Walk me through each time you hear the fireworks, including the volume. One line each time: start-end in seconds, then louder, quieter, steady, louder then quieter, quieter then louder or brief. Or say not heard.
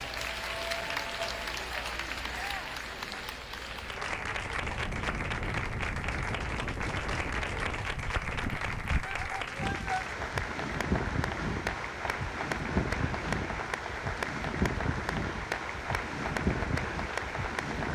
not heard.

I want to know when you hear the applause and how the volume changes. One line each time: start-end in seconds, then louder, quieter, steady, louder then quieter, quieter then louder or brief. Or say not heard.
0.0-17.9 steady.